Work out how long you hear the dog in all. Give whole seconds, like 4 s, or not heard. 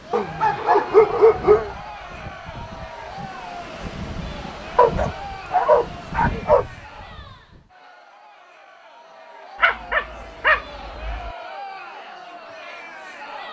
5 s.